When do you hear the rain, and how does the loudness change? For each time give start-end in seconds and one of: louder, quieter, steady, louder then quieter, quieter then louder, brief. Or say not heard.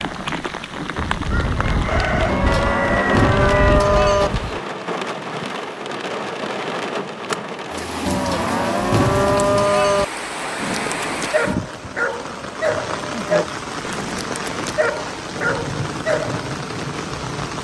0.0-17.5 steady.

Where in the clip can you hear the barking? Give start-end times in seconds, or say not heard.
10.6-16.4.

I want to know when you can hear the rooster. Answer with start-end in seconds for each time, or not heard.
0.9-4.6.